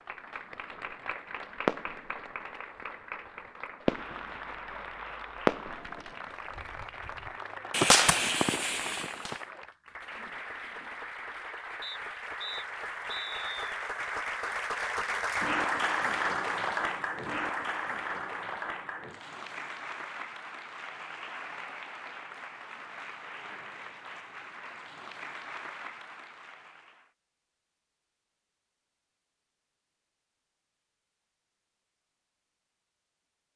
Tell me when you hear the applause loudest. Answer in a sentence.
The loudest moment of the applause is at 16 seconds.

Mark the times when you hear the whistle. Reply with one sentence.
You can hear the whistle from 11.8 to 13.7 s.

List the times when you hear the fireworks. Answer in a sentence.
You can hear the fireworks from 0.6 to 2.4 s, from 3.9 to 7.1 s and from 7.7 to 9.4 s.